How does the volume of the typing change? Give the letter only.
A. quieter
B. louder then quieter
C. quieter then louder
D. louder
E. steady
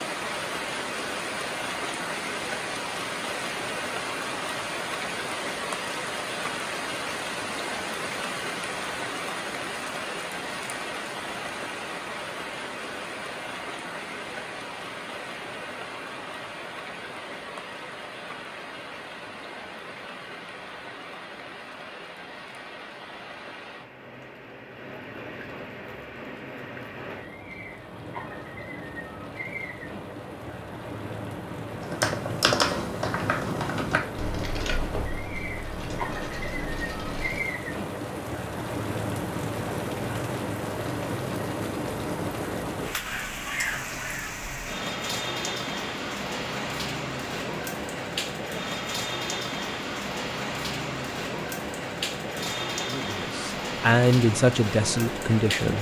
A.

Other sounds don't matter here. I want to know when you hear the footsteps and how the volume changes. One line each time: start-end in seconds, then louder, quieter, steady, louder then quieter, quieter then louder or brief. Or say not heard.
not heard.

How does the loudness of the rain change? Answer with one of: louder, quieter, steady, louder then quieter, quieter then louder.
quieter then louder.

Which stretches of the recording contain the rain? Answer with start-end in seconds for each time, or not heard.
0.0-55.7.